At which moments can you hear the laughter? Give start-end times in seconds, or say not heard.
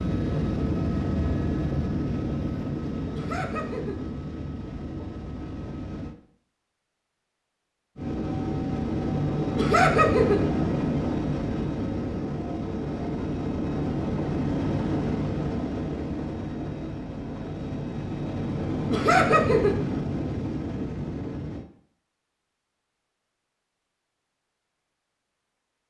3.1-4.0, 9.6-10.4, 18.9-19.8.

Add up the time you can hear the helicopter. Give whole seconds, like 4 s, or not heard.
20 s.